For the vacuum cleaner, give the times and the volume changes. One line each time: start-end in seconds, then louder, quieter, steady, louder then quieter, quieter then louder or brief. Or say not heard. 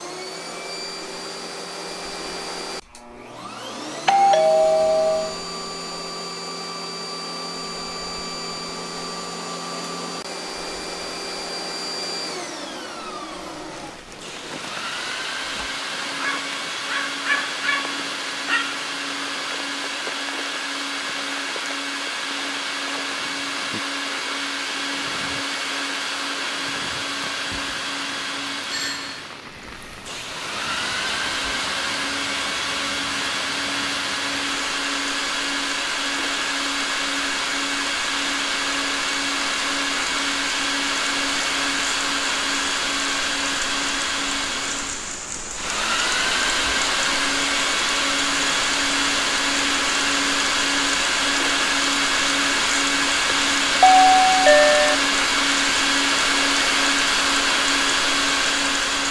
0.0-59.0 louder.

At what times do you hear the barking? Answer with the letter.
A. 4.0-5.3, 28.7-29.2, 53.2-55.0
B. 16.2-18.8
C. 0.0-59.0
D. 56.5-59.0
B.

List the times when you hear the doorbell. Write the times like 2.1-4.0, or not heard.
4.0-5.3, 28.7-29.2, 53.2-55.0.